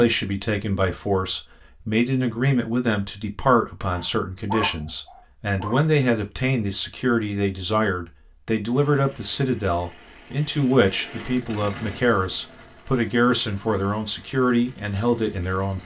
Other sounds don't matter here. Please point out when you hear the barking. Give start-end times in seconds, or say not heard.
3.9-5.8.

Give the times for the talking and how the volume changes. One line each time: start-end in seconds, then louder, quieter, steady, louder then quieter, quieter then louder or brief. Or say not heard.
0.0-15.8 steady.